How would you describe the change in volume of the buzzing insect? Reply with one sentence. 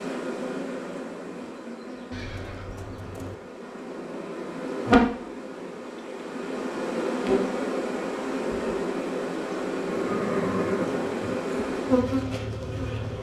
The volume of the buzzing insect goes up.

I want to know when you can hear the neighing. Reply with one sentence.
You can hear the neighing from 2.1 to 3.4 s and from 9.8 to 11.3 s.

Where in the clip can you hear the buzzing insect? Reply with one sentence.
You can hear the buzzing insect from 0.0 to 13.1 s.